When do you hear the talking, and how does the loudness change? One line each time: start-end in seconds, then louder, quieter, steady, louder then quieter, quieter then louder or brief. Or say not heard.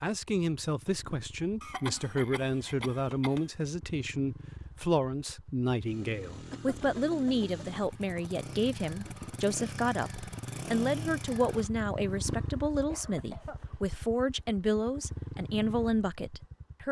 0.0-16.8 steady.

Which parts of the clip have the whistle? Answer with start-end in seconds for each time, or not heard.
not heard.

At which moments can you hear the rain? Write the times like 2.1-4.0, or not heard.
not heard.